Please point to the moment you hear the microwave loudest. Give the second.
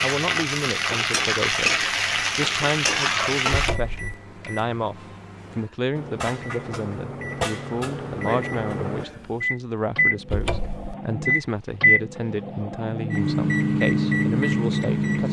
14 s.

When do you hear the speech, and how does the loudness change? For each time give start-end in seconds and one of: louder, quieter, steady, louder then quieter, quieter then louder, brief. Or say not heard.
0.0-15.2 steady.